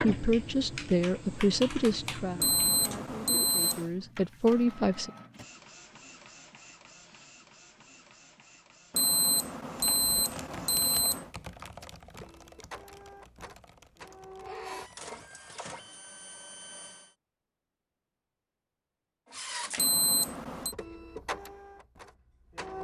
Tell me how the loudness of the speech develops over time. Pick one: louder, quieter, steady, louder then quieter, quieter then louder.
quieter then louder.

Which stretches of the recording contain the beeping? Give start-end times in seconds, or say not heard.
2.4-3.9, 8.9-11.3, 19.8-20.8.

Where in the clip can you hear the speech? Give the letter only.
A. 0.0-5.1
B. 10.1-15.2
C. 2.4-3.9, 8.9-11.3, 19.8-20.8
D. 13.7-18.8
A.